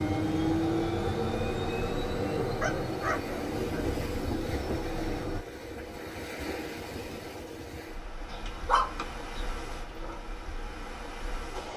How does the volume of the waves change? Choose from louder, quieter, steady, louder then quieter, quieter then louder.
louder then quieter.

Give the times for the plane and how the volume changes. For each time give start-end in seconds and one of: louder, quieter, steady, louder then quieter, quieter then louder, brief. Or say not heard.
0.0-5.4 quieter.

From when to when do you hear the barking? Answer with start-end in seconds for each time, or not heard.
2.6-3.9, 8.3-10.2.